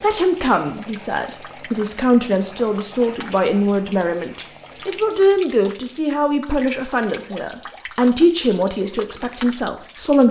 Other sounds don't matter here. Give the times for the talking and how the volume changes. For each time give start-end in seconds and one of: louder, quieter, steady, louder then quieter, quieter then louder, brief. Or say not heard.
0.0-10.2 steady.